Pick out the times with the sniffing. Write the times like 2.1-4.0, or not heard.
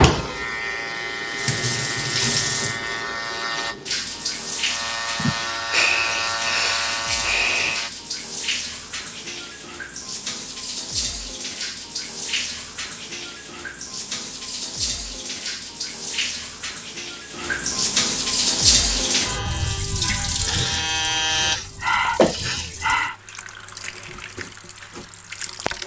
5.2-7.8, 20.4-23.1.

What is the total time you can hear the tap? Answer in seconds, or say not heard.
26 s.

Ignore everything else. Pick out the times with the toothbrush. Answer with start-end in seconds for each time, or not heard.
not heard.